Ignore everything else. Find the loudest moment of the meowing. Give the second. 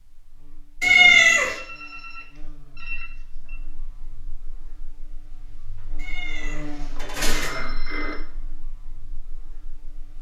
1 s.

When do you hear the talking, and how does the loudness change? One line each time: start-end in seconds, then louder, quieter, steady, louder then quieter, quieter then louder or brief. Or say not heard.
not heard.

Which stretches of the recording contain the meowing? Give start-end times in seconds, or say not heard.
0.8-1.6, 6.0-7.6.